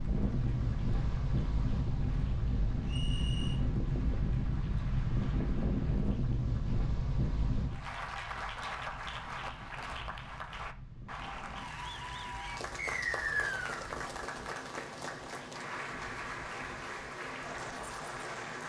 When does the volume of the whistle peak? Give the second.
13 s.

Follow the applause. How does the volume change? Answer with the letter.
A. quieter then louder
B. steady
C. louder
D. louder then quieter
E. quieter
C.